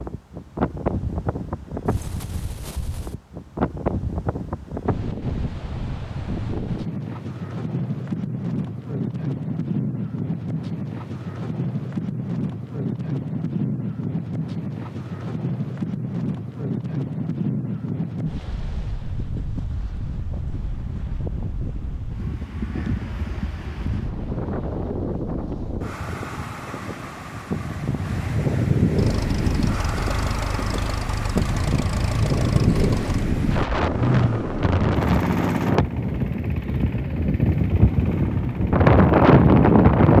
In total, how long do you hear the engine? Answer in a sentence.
You can hear the engine for 11 seconds altogether.